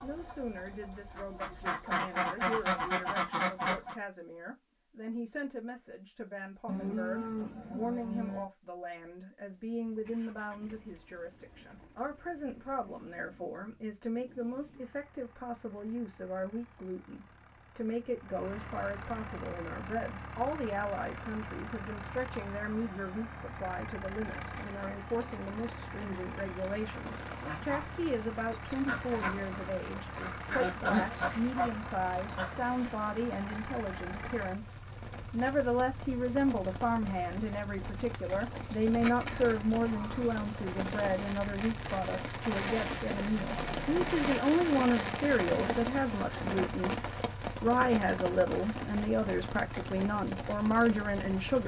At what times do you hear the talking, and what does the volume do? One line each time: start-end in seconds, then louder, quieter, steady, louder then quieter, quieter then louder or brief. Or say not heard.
0.0-51.6 louder.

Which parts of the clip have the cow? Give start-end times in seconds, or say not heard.
6.7-8.5, 38.6-40.3.